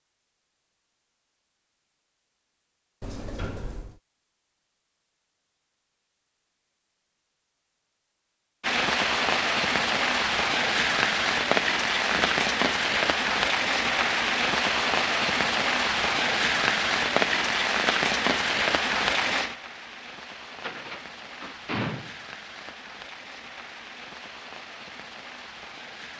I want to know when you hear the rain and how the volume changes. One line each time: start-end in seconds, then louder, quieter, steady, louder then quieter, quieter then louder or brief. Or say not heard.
8.6-26.1 quieter.